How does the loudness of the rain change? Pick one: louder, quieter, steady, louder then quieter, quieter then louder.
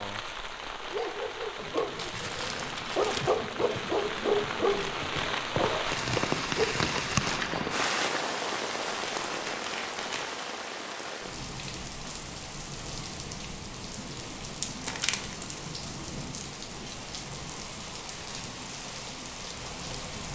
louder then quieter.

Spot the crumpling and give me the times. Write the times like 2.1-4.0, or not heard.
1.9-3.3, 8.9-10.2, 14.8-15.5.